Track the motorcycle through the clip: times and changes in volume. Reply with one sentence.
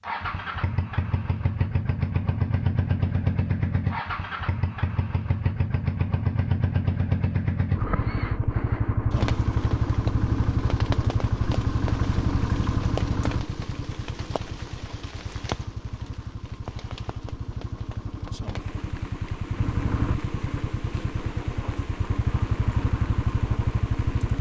You can hear the motorcycle from 0.0 to 24.3 s, getting quieter then louder.